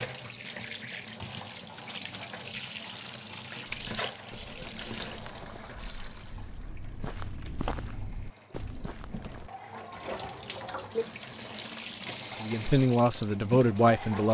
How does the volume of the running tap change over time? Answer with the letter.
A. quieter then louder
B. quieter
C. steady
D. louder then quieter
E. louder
A.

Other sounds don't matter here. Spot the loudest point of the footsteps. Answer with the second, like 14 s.
8 s.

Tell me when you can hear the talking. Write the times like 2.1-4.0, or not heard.
12.4-14.2.